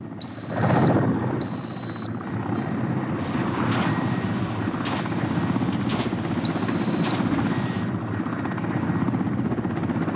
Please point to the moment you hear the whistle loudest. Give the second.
7 s.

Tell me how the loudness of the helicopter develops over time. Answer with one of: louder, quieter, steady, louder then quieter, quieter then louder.
steady.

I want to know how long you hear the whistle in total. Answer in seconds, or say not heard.
3 s.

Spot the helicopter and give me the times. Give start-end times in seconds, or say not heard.
0.0-10.1.